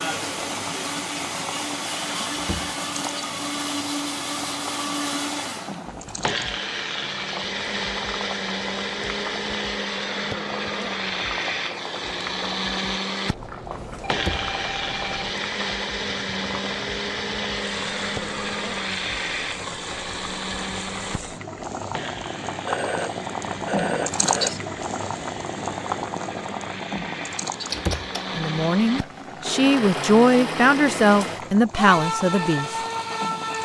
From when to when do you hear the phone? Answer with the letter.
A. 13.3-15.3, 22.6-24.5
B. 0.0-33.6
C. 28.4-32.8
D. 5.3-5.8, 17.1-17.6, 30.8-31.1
A.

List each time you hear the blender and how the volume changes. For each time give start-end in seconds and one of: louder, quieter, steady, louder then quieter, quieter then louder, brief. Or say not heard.
0.0-33.6 quieter then louder.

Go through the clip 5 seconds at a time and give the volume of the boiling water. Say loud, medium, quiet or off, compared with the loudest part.
medium, medium, medium, medium, loud, loud, medium.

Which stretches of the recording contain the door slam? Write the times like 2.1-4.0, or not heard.
2.3-2.8, 14.1-14.5, 27.7-28.1.